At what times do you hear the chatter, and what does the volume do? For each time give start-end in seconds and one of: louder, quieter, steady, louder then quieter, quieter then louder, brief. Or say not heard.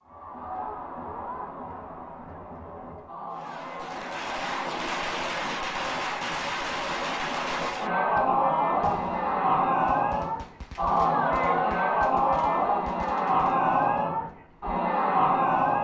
0.0-15.7 louder.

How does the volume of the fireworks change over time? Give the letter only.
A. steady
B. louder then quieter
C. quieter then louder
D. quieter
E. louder
D.